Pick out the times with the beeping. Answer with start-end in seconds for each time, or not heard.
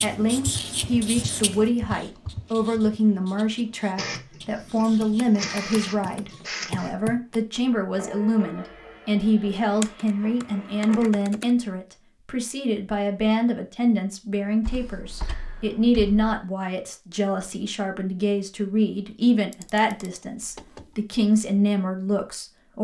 not heard.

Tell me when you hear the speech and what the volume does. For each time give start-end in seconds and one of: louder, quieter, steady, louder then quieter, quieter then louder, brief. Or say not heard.
0.0-22.7 steady.